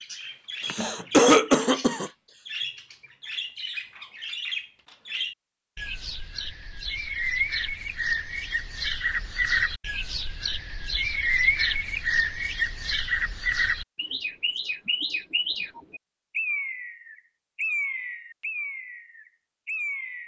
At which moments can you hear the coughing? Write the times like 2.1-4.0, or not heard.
0.7-2.1.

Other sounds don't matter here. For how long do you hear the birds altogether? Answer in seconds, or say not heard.
20 s.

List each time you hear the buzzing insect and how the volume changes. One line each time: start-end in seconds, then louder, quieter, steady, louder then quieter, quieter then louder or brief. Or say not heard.
not heard.